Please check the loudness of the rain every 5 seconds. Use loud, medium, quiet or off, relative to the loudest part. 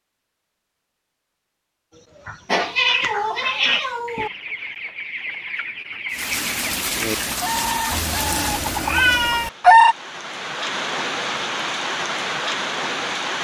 off, loud, loud.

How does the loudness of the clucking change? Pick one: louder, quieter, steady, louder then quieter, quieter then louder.
louder.